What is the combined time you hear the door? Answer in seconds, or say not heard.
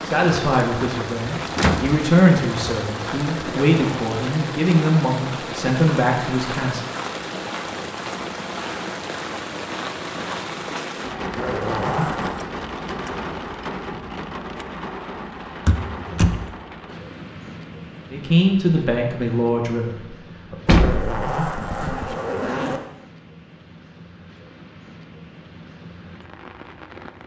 3 s.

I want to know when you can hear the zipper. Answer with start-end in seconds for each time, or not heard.
3.5-4.2, 11.3-12.4, 20.8-22.8.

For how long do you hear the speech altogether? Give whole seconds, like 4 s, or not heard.
9 s.